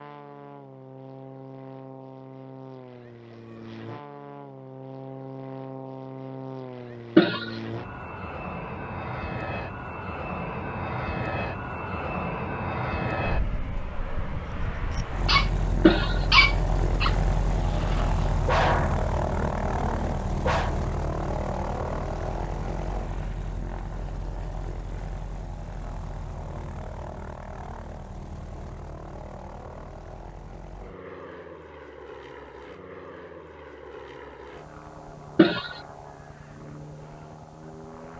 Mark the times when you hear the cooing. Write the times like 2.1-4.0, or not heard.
not heard.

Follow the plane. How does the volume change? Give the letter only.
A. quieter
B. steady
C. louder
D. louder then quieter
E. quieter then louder
D.